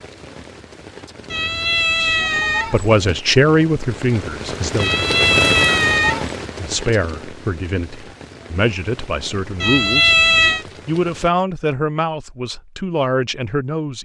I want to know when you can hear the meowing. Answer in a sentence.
You can hear the meowing from 1.3 to 3.1 s, from 4.8 to 6.3 s and from 9.6 to 10.7 s.